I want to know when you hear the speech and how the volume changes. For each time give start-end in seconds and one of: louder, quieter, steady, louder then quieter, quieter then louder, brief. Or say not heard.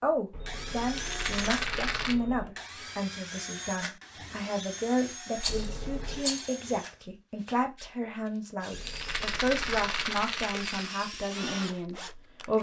0.0-12.5 steady.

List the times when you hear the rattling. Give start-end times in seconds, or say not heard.
0.9-2.1, 5.3-6.5, 8.8-11.0.